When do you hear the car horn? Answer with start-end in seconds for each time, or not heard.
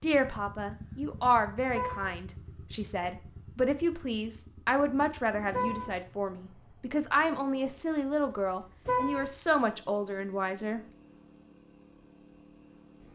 1.7-2.1, 5.5-6.0, 8.8-9.3.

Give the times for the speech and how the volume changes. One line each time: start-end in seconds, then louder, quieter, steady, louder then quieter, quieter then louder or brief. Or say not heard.
0.0-10.8 steady.